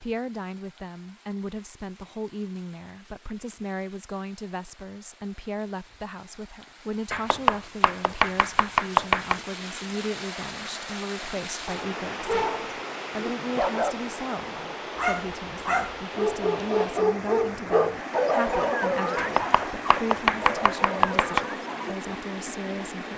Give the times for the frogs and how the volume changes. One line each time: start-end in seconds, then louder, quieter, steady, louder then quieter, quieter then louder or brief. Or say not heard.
not heard.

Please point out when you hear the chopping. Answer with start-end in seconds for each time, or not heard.
7.1-9.4, 19.1-21.4.